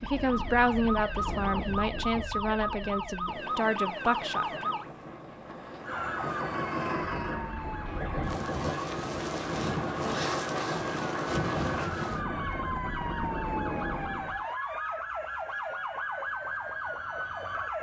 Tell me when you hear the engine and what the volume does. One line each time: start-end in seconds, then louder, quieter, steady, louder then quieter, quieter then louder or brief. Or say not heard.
3.4-11.8 louder.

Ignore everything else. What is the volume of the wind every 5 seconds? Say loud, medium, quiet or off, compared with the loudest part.
medium, loud, loud, off.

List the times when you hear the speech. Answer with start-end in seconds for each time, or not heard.
0.0-4.7.